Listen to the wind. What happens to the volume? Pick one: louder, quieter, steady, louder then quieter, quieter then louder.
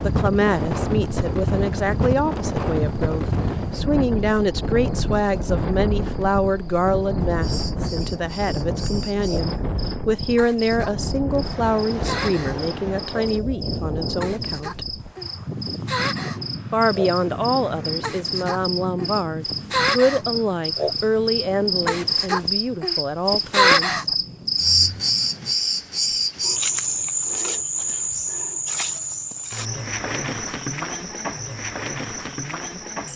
quieter.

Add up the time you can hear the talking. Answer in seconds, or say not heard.
22 s.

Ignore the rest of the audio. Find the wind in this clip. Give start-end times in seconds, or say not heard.
0.0-25.6.